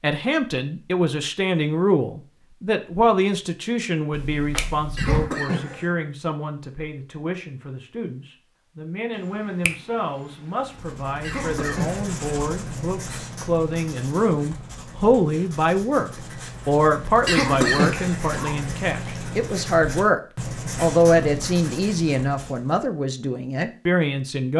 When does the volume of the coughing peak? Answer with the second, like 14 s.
18 s.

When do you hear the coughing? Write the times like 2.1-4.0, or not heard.
5.0-6.0, 11.2-12.6, 17.2-18.6.